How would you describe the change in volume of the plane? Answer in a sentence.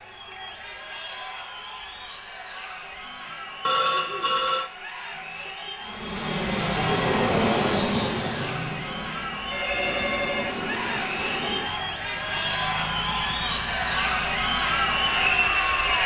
The volume of the plane goes down.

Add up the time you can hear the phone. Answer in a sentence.
The phone can be heard for 2 seconds in total.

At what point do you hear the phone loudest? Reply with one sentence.
The loudest moment of the phone is at 4 seconds.